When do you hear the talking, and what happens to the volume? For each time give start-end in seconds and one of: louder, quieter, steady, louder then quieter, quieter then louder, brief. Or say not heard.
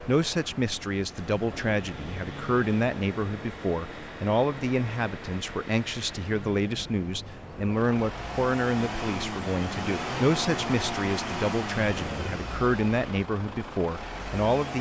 0.1-14.7 steady.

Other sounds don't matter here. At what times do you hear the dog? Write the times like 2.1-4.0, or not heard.
not heard.